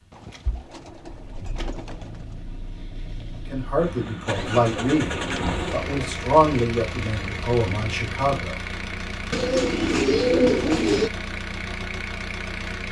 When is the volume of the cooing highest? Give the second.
10 s.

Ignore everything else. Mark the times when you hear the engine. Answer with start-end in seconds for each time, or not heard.
0.2-12.8.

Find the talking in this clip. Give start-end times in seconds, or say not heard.
3.5-8.6.